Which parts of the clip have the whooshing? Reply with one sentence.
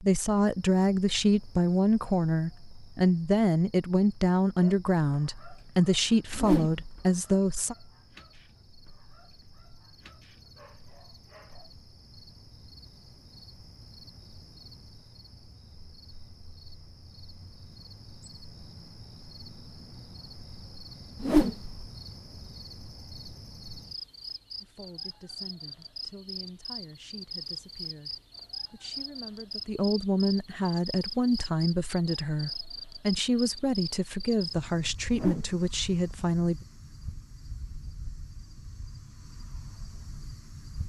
The whooshing can be heard from 6.3 to 7.0 s, from 21.2 to 21.8 s and from 35.1 to 35.6 s.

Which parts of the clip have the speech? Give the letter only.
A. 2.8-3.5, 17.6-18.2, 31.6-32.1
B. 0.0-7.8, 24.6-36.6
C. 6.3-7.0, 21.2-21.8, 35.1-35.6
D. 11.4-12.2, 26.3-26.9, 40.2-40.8
B.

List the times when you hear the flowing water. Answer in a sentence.
You can't hear the flowing water here.